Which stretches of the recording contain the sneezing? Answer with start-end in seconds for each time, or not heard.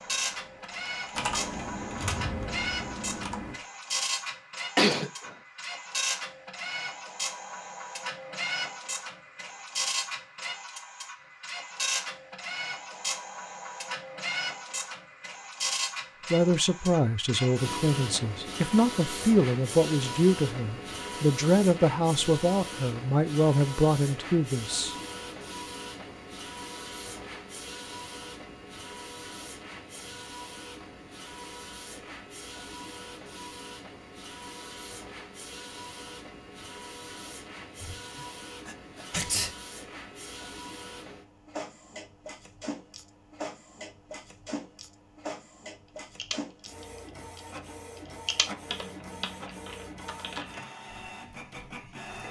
4.8-5.3, 38.0-39.5.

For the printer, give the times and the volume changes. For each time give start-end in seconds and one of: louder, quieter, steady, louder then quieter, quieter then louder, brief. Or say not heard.
0.0-52.2 quieter.